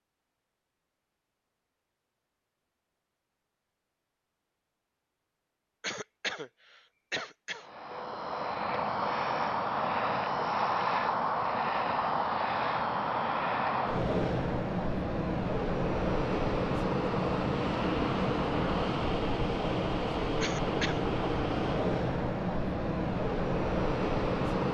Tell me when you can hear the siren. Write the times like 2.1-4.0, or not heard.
not heard.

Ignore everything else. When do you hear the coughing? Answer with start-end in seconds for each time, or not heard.
5.8-7.7, 20.4-21.1.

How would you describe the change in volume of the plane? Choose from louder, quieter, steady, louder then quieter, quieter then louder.
steady.